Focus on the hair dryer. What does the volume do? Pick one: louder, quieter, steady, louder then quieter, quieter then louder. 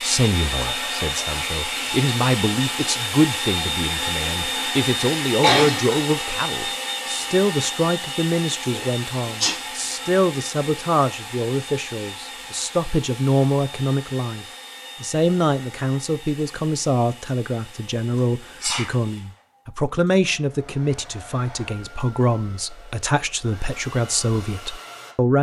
quieter.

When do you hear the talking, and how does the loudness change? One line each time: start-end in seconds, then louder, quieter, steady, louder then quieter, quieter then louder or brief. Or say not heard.
0.0-25.3 steady.